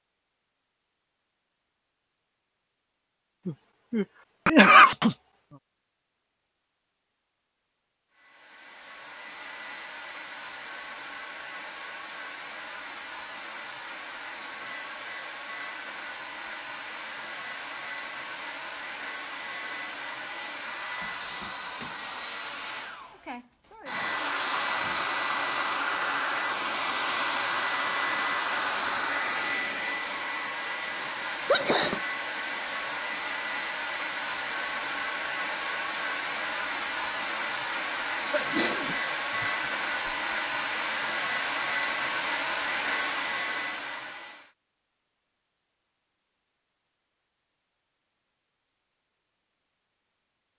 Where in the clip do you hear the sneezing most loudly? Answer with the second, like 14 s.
5 s.